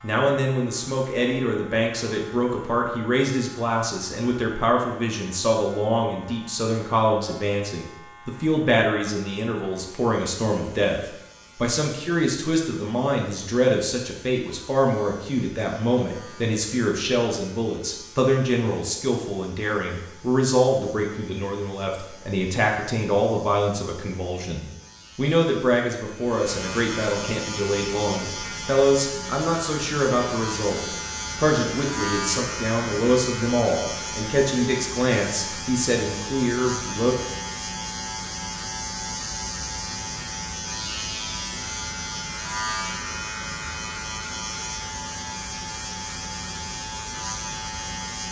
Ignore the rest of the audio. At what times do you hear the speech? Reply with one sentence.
You can hear the speech from 0.0 to 37.1 s.